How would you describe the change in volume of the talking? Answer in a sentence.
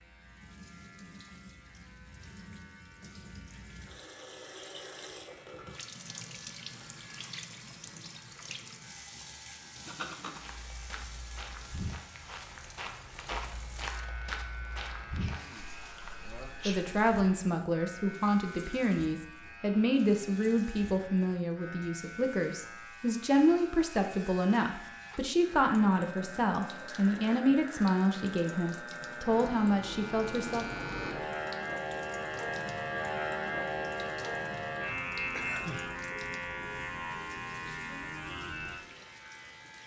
The loudness of the talking stays about the same.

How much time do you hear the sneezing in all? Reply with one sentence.
You can hear the sneezing for 2 seconds altogether.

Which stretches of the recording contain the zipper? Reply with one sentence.
You can hear the zipper from 9.8 to 10.6 s.